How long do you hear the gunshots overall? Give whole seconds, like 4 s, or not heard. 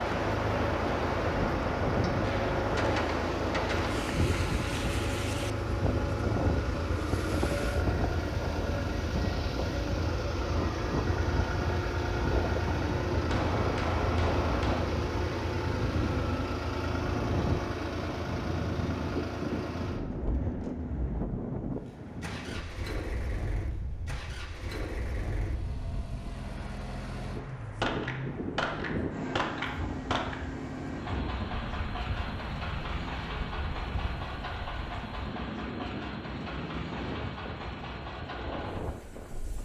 6 s.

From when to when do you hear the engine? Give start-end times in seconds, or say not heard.
0.0-39.6.